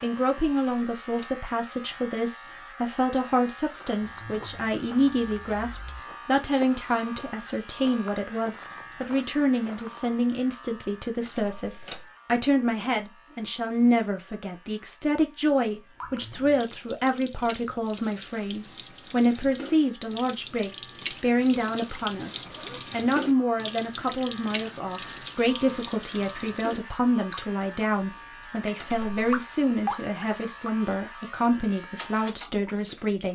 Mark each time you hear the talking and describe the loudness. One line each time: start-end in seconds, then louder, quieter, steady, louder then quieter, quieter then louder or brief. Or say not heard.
0.0-33.3 steady.